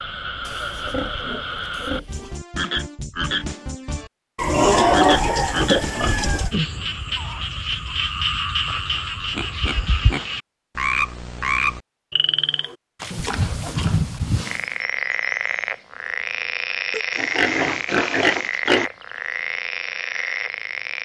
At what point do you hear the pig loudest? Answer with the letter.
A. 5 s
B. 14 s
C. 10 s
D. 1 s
A.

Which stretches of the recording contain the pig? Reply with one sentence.
You can hear the pig from 0.5 to 2.4 s, from 4.3 to 6.5 s, from 8.7 to 10.2 s, from 13.0 to 14.8 s and from 16.9 to 18.9 s.